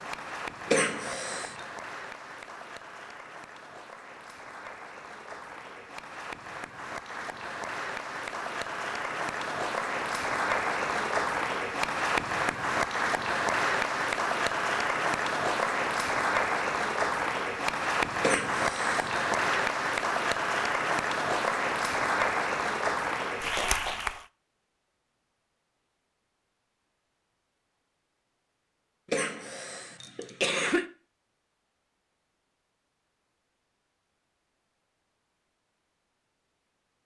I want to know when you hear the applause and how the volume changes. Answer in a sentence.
The applause can be heard from 0.0 to 24.2 s, getting louder.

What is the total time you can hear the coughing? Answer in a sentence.
You can hear the coughing for 4 seconds altogether.